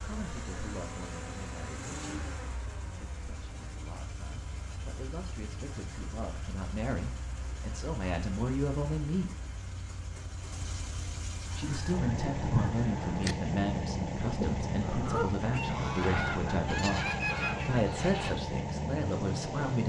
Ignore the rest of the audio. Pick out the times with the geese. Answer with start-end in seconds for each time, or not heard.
11.5-18.4.